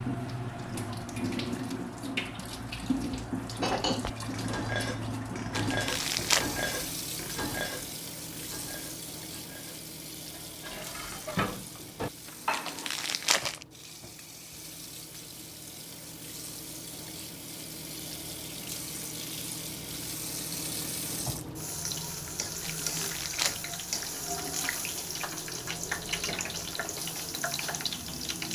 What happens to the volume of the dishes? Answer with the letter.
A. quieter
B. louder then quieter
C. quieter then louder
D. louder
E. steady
C.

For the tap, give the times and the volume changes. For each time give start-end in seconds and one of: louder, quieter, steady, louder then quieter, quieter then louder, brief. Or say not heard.
0.0-28.5 quieter then louder.